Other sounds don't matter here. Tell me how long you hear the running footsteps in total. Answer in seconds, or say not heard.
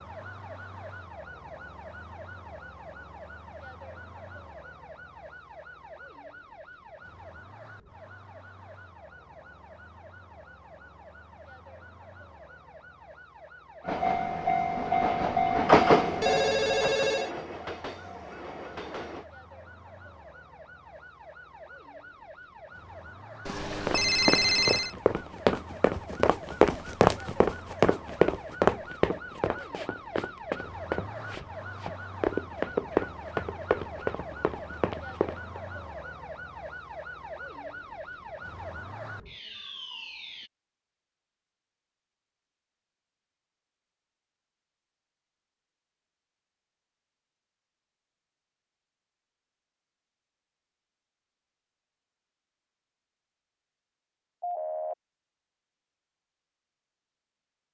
12 s.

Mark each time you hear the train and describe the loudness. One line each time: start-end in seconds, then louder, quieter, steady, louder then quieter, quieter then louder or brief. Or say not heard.
13.8-19.3 louder then quieter.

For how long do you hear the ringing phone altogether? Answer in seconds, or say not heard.
3 s.